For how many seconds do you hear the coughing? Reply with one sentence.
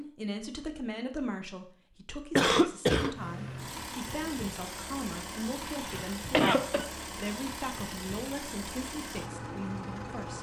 You can hear the coughing for 2 seconds altogether.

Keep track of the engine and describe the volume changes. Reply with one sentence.
The volume of the engine stays about the same.